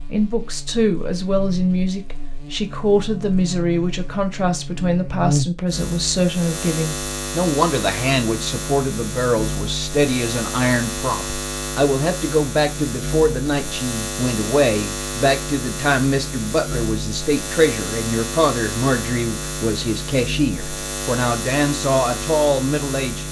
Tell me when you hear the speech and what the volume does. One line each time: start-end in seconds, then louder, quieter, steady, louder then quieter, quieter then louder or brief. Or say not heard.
0.1-23.2 steady.